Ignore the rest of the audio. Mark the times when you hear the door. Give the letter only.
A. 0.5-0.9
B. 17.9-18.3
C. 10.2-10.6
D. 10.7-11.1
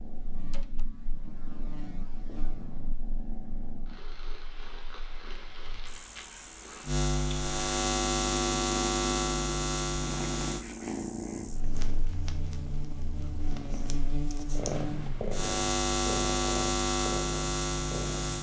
A.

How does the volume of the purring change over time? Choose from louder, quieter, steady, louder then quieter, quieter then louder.
louder.